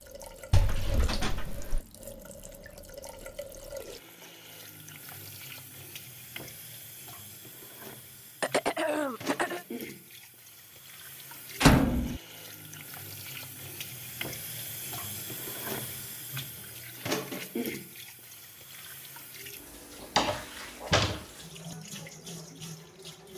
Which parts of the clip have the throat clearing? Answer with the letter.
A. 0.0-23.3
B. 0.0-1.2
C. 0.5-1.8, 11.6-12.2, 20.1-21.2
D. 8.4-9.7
D.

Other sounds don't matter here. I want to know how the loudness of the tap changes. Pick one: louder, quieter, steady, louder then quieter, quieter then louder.
louder then quieter.